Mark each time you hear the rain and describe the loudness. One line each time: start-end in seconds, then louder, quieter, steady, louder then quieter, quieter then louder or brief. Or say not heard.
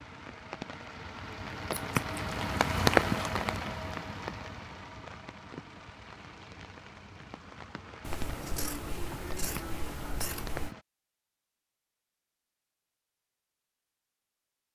0.0-10.8 louder then quieter.